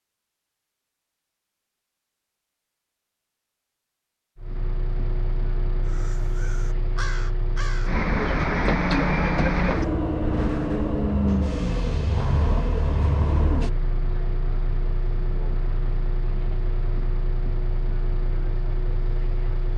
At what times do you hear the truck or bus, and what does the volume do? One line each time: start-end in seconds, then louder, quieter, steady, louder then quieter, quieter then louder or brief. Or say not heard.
4.3-19.7 louder then quieter.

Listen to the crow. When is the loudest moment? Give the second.
7 s.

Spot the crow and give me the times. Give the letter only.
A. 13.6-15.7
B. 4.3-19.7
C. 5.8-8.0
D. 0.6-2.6
C.